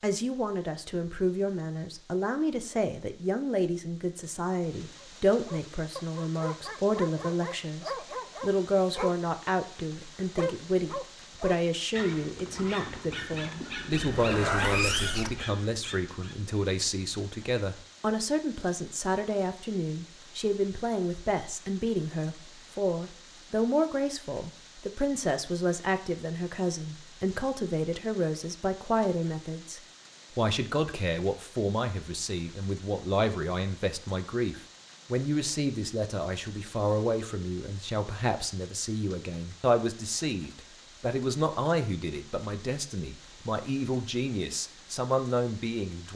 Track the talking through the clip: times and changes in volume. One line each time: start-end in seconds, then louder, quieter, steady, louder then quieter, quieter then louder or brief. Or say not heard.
0.0-46.1 steady.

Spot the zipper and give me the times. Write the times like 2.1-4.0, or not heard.
13.9-15.4.